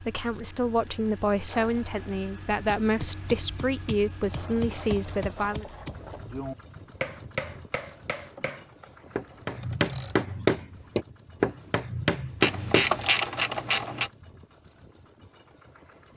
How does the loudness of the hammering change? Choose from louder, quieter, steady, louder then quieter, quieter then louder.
louder.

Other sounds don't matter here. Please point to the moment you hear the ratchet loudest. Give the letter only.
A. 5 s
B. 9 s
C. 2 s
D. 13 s
D.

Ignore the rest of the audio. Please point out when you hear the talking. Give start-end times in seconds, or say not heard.
0.0-5.7.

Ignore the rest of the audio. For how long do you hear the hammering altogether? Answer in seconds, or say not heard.
10 s.